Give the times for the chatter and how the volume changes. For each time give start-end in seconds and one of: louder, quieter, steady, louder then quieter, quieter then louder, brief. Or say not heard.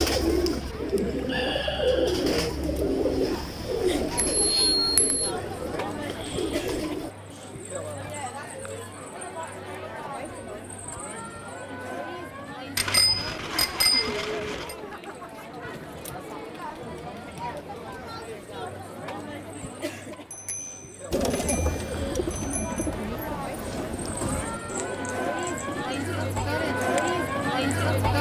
0.1-28.1 louder.